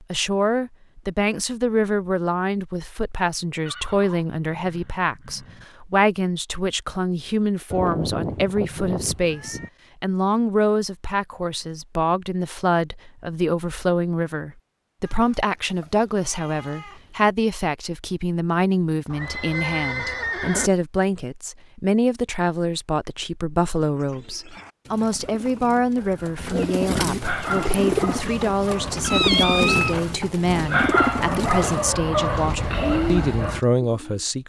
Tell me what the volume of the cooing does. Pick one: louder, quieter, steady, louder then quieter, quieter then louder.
louder.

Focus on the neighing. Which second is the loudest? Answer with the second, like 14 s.
20 s.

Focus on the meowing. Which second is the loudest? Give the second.
29 s.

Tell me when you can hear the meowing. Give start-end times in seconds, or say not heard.
7.7-9.7, 15.1-17.2, 29.0-30.1.